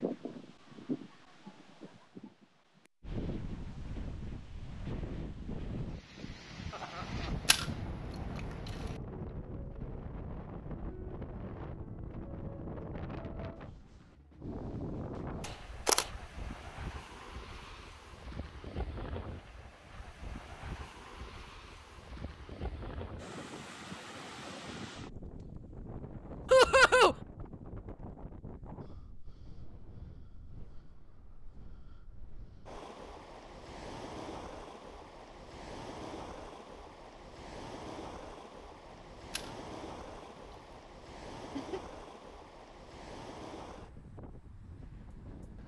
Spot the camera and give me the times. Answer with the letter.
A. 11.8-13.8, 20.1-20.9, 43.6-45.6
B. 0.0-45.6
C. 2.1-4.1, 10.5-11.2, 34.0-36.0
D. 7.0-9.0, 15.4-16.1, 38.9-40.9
D.